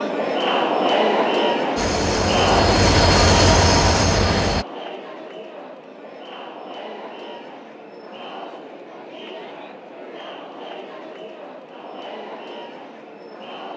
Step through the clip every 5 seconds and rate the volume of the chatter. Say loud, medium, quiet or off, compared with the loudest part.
loud, quiet, quiet.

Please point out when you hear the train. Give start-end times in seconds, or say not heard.
1.8-4.7.